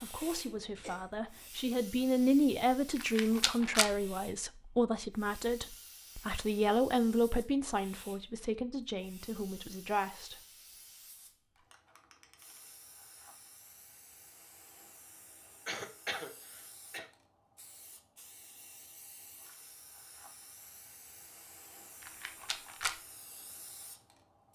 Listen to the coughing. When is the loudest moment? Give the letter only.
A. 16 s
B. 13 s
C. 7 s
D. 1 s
A.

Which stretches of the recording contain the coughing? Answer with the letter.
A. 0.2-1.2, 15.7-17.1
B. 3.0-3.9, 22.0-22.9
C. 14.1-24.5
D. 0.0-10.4
A.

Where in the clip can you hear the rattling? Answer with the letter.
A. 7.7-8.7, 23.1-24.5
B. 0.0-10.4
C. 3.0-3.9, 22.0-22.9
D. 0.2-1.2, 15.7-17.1
C.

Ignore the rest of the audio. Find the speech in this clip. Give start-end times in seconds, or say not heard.
0.0-10.4.